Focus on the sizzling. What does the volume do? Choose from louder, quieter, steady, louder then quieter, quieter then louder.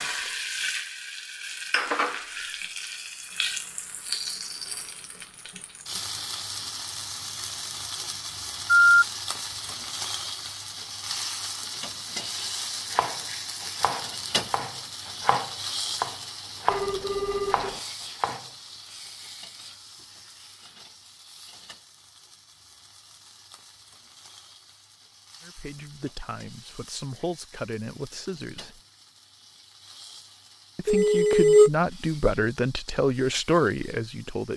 quieter.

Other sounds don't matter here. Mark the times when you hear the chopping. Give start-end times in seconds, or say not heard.
12.9-18.5.